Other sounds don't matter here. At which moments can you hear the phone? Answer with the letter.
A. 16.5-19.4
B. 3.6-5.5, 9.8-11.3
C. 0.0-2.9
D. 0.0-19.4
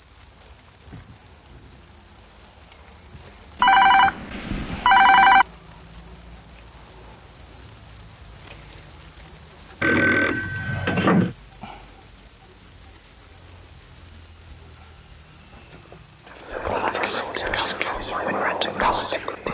B.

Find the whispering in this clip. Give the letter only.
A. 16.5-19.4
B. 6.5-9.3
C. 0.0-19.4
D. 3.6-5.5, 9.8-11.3
A.